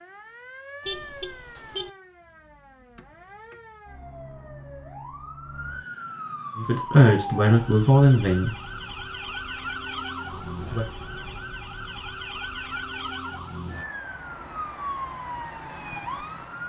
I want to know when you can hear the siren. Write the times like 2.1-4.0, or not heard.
0.0-16.6.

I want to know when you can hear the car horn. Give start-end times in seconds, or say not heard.
0.8-1.9, 10.3-11.5.